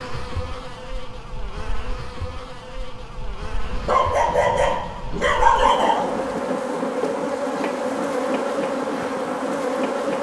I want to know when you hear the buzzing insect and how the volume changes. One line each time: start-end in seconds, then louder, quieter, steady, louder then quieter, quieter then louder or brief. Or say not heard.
0.0-10.1 louder.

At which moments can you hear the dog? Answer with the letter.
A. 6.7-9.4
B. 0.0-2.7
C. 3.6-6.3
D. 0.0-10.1
C.